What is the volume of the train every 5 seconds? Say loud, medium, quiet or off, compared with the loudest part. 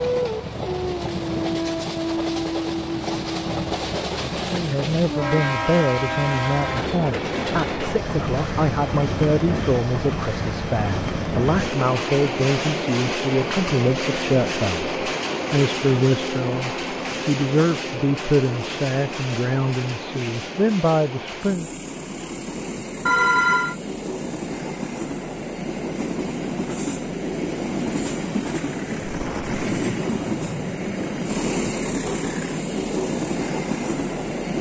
loud, loud, loud, loud, medium, loud, loud.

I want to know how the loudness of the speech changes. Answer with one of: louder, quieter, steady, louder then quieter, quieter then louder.
steady.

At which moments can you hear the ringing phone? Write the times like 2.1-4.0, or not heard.
23.1-23.8.